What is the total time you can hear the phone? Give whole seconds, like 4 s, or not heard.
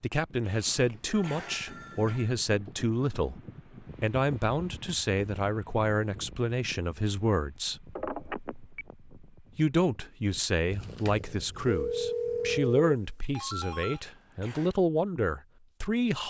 5 s.